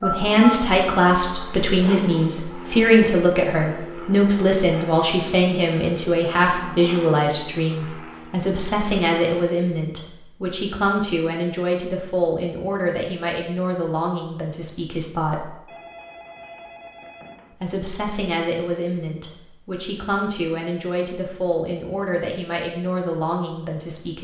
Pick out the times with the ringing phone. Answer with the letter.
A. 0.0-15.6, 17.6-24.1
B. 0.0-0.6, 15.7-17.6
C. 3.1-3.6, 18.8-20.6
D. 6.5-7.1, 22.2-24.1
B.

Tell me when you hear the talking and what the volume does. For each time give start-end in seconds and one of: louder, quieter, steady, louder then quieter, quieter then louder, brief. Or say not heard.
0.0-15.6 quieter
17.6-24.1 steady.